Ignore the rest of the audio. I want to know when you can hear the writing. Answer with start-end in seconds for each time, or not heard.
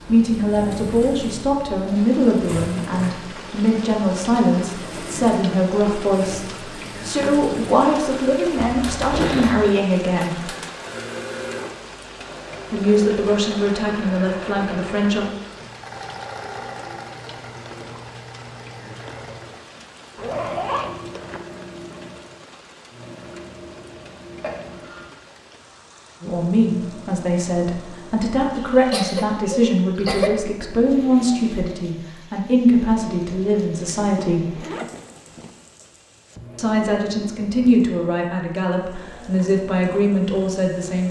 not heard.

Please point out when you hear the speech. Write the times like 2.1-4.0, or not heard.
0.1-10.4, 12.7-15.2, 26.2-34.5, 36.5-41.0.